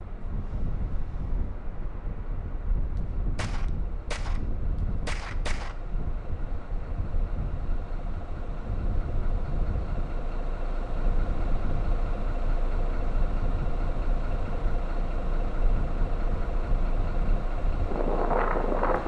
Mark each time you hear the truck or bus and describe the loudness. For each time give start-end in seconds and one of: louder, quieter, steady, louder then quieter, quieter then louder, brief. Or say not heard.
0.0-19.0 louder.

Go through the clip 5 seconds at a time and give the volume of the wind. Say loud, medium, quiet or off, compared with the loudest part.
medium, medium, medium, loud.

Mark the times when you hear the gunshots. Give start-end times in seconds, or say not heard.
3.0-4.4, 5.0-5.8.